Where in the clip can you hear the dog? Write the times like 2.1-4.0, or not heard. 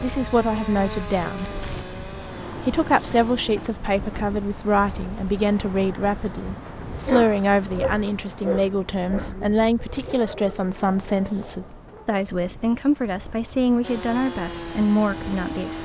6.7-12.2.